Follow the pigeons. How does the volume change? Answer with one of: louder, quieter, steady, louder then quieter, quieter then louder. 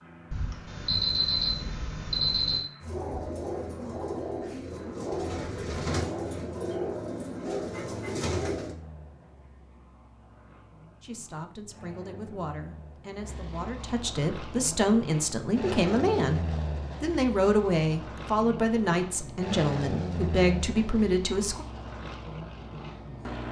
steady.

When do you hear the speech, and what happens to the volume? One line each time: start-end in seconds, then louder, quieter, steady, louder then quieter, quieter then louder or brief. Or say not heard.
11.0-21.6 louder.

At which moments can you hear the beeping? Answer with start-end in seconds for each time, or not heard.
0.3-2.6.